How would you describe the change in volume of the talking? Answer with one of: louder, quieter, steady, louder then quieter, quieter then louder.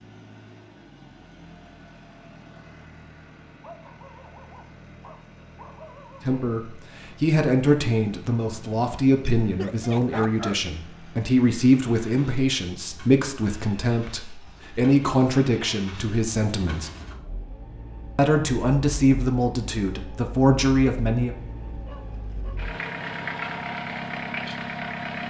steady.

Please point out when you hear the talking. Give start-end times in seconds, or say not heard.
6.2-16.9, 18.1-21.4.